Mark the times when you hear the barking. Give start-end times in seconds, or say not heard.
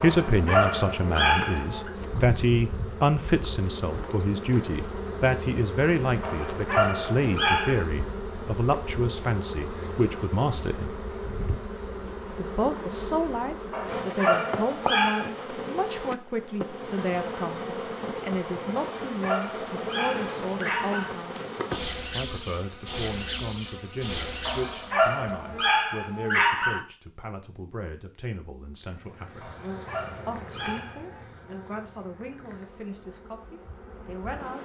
0.0-1.9, 6.2-7.8, 13.7-15.3, 18.8-21.1, 24.4-26.8, 29.4-31.2.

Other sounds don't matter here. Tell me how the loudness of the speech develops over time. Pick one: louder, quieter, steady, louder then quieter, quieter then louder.
quieter.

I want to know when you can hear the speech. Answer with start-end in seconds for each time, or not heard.
0.0-10.9, 12.3-21.4, 22.1-29.6, 30.2-34.5.